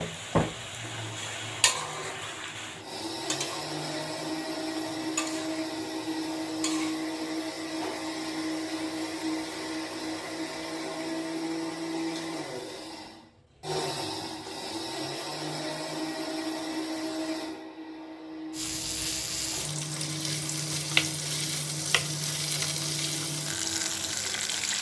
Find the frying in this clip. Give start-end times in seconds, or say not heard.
0.0-7.0, 18.6-24.7.